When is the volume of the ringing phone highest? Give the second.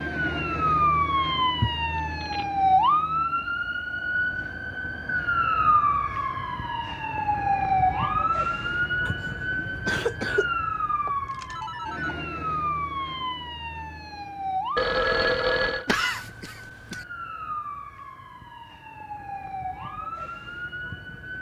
15 s.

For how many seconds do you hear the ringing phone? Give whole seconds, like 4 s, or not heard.
3 s.